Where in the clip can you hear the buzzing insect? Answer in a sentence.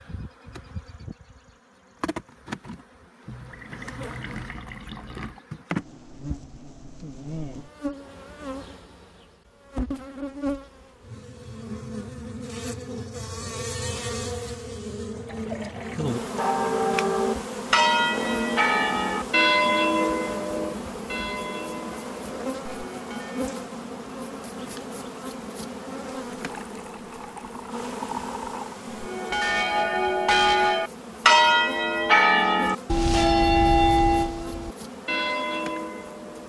The buzzing insect can be heard from 0.0 to 36.4 s.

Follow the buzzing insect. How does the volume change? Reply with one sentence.
The volume of the buzzing insect goes up, then down.